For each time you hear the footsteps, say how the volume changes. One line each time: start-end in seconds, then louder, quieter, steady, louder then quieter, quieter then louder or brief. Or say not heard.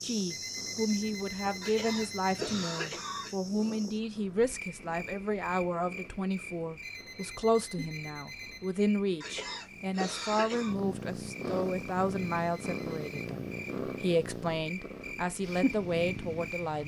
not heard.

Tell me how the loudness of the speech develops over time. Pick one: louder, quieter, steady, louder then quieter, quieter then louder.
steady.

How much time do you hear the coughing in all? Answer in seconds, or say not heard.
3 s.